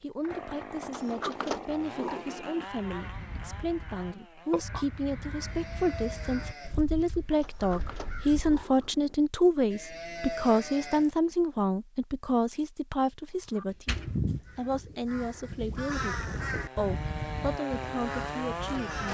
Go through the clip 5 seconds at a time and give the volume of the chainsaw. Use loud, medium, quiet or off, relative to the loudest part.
medium, off, off, loud.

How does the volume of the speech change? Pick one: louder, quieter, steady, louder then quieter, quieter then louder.
louder then quieter.